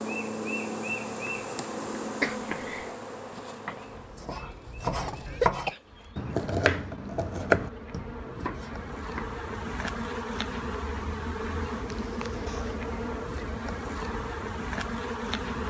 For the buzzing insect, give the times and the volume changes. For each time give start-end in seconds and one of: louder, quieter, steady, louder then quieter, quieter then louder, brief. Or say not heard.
0.0-15.6 quieter then louder.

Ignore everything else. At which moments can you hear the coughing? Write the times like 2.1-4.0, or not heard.
2.2-2.9, 5.2-6.2, 11.8-12.8.